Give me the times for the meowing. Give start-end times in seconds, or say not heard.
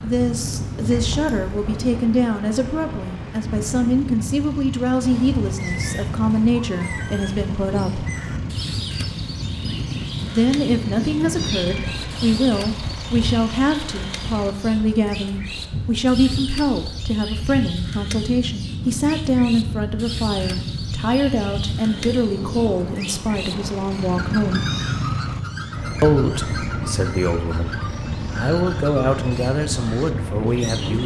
0.9-2.0, 11.3-12.2, 23.9-25.2.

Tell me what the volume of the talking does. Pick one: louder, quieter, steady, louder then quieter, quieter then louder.
steady.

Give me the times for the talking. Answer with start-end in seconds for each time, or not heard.
0.0-8.1, 10.2-24.7, 26.0-31.0.